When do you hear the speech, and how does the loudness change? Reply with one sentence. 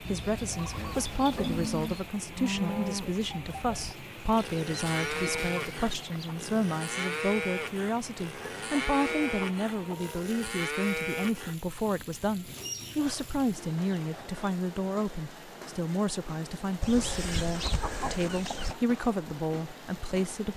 The speech can be heard from 0.0 to 20.5 s, at a steady volume.